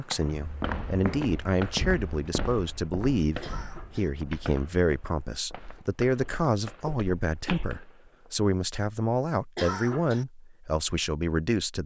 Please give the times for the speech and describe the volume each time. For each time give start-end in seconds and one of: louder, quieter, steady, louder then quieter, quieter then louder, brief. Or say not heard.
0.0-11.8 steady.